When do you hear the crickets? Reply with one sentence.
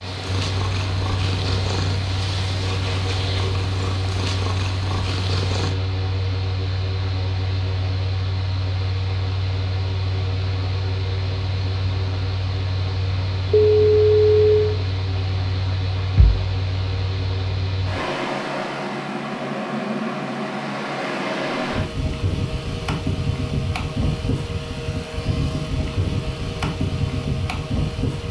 The crickets can't be heard in this clip.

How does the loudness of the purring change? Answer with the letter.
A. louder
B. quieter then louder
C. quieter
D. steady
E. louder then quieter
D.